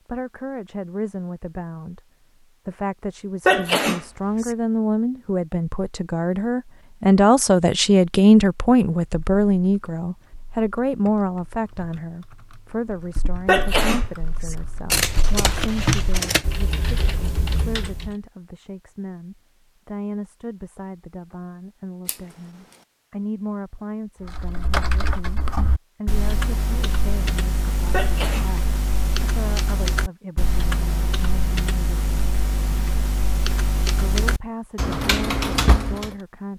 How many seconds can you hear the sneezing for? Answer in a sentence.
You can hear the sneezing for 3 seconds altogether.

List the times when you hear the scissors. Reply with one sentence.
You can hear the scissors from 14.9 to 16.4 s.